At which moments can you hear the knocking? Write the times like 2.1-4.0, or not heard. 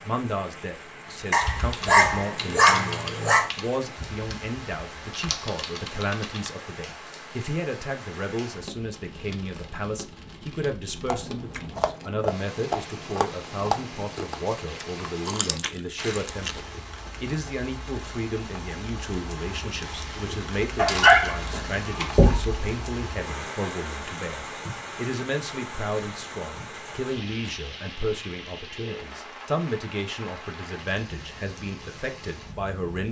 22.1-22.6.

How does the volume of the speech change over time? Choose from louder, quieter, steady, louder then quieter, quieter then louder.
steady.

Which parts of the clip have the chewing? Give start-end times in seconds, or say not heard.
11.1-16.6.